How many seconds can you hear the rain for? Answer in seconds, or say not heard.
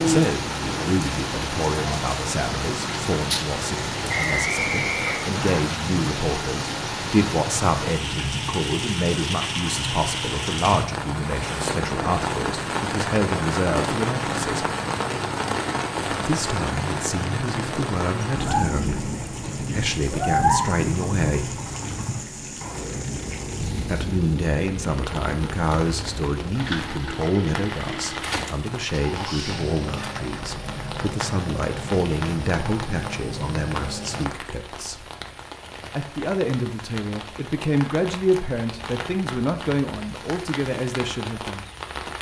42 s.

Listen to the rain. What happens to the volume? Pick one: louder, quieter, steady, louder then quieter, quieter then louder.
quieter.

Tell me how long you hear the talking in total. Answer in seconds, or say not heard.
37 s.